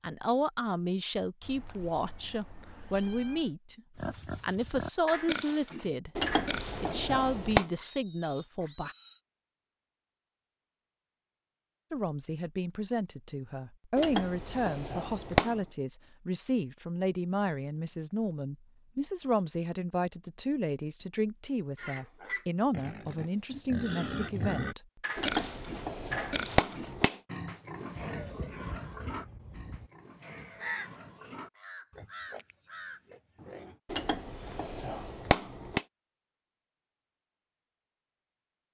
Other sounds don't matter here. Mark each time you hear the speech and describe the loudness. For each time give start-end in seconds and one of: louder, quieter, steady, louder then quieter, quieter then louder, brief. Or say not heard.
0.0-8.9 steady
11.9-24.8 steady.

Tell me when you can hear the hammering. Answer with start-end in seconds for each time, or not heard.
6.2-7.7, 13.9-15.6, 25.1-27.1, 33.9-35.8.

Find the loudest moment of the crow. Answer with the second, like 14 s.
31 s.